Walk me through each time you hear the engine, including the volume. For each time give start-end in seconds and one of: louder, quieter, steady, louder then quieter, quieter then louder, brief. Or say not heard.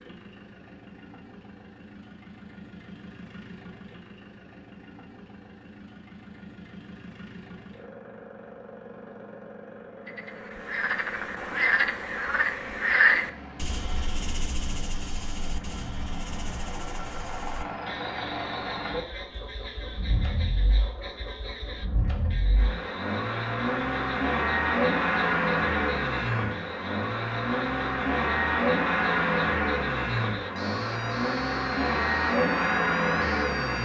0.0-33.8 louder.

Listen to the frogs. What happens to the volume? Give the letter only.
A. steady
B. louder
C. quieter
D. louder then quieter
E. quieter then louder
C.